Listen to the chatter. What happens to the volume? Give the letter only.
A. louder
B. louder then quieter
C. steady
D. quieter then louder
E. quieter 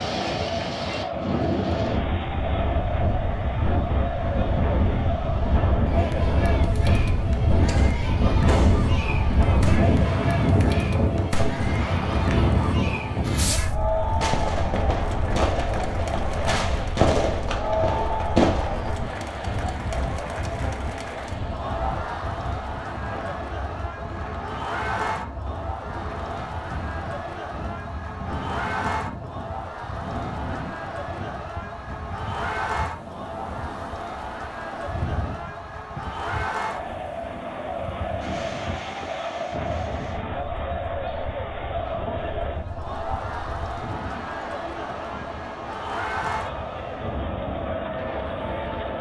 C.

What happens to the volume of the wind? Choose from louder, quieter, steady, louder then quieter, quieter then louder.
quieter.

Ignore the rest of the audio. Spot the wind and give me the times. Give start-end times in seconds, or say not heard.
0.0-48.9.